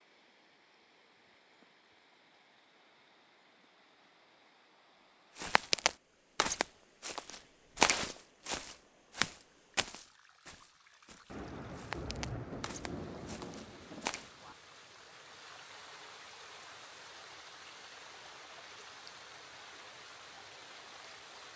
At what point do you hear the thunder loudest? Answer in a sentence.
The volume of the thunder peaks at 12 seconds.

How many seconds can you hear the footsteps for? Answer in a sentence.
You can hear the footsteps for 9 seconds altogether.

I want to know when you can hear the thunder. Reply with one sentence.
You can hear the thunder from 11.2 to 14.6 s.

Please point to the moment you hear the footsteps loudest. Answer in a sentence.
The volume of the footsteps peaks at 8 seconds.